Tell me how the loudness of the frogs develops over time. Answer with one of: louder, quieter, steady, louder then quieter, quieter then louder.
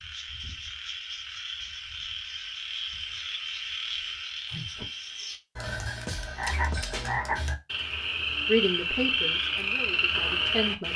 louder.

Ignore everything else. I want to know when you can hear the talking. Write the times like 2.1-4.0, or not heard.
8.4-10.9.